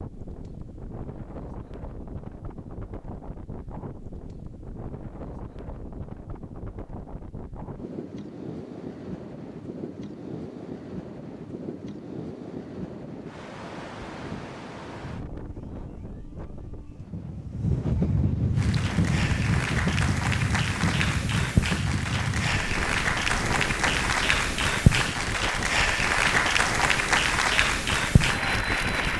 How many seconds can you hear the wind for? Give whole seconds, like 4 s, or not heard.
29 s.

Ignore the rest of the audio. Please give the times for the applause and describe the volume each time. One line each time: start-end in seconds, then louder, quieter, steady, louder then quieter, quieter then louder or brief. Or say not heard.
18.6-29.1 louder.